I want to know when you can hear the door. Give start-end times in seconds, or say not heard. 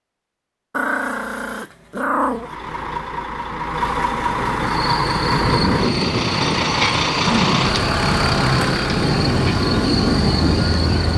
not heard.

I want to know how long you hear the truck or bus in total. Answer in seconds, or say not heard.
9 s.